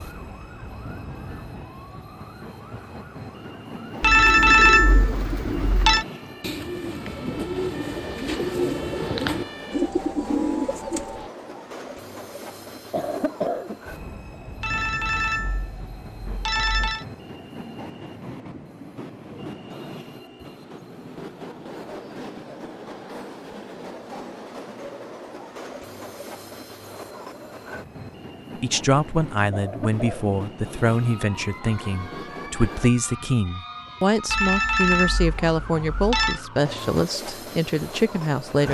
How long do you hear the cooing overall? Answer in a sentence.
The cooing can be heard for 7 seconds in total.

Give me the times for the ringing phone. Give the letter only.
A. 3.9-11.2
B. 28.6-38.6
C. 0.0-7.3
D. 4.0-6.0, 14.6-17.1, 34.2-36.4
D.